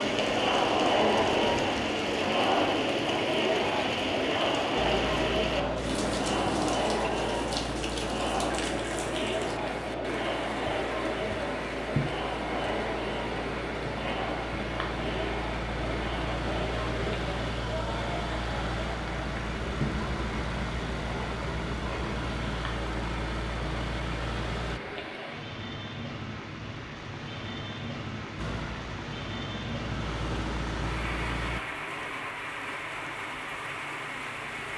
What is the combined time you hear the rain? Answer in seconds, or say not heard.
35 s.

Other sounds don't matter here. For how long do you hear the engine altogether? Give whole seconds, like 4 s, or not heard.
23 s.